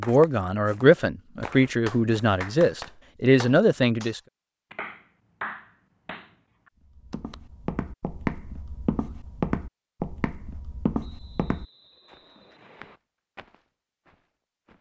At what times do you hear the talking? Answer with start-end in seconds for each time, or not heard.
0.0-4.2.